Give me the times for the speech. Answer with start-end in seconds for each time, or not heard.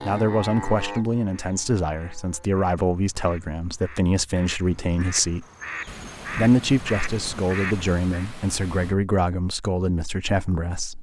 0.0-5.5, 6.3-10.9.